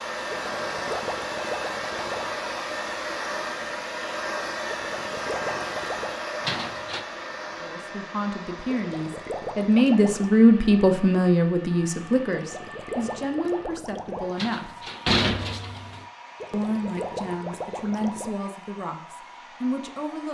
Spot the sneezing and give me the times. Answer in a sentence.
You can't hear the sneezing here.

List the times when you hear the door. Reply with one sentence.
You can hear the door from 6.4 to 7.0 s and from 14.3 to 16.1 s.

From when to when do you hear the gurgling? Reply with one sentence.
You can hear the gurgling from 0.3 to 2.3 s, from 4.7 to 6.2 s, from 8.7 to 10.3 s, from 12.3 to 14.3 s and from 16.4 to 18.4 s.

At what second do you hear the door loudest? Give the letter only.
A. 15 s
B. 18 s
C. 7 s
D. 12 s
A.